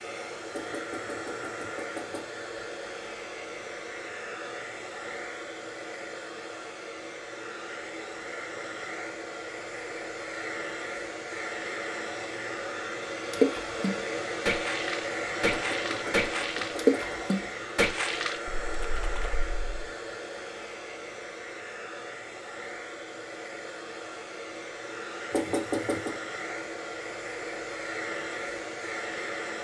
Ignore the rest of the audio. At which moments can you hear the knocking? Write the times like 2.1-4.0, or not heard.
0.5-2.4, 15.5-17.0, 25.3-26.1.